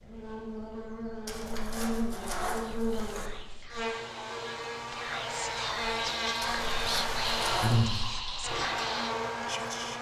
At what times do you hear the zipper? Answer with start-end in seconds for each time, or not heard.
1.2-3.3, 6.4-8.2.